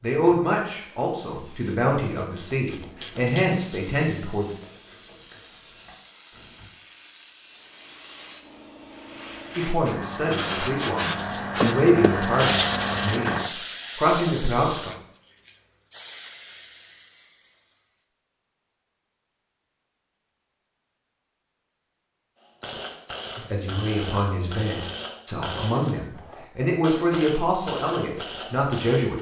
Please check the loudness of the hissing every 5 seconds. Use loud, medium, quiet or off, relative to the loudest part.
quiet, quiet, loud, quiet, off, off.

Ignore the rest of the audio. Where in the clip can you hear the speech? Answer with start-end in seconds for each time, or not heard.
0.0-4.5, 9.6-14.9, 23.4-29.1.